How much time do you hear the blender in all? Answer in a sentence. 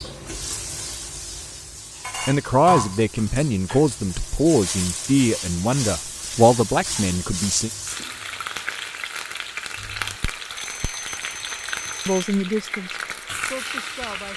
You can't hear the blender here.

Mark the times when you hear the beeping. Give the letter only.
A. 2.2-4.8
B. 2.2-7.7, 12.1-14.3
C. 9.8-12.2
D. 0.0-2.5
C.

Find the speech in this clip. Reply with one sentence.
You can hear the speech from 2.2 to 7.7 s and from 12.1 to 14.3 s.